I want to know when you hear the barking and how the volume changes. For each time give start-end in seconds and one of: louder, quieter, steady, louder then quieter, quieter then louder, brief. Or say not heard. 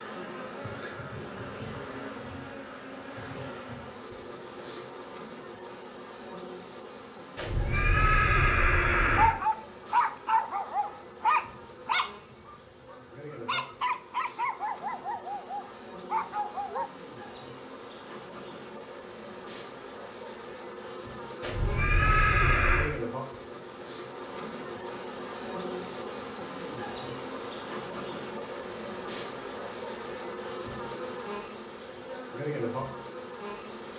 9.2-16.9 quieter.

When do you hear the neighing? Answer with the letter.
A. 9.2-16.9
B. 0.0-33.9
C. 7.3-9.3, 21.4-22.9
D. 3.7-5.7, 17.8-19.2
C.